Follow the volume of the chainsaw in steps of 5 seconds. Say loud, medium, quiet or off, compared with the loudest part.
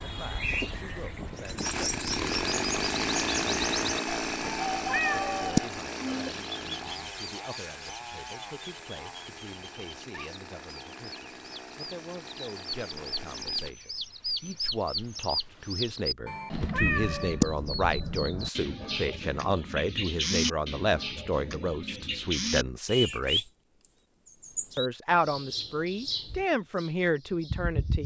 loud, medium, quiet, off, off, off.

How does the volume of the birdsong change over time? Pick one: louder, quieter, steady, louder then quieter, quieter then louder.
quieter then louder.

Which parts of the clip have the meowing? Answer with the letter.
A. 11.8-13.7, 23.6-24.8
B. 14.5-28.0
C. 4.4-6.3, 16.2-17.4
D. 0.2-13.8
C.